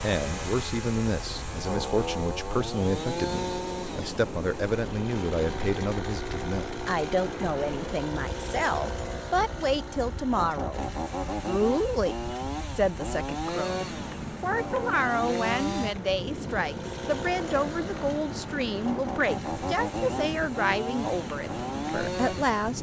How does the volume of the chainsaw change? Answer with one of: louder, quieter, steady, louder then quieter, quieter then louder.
steady.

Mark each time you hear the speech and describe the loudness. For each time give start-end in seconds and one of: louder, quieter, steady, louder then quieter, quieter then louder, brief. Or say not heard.
0.0-22.7 steady.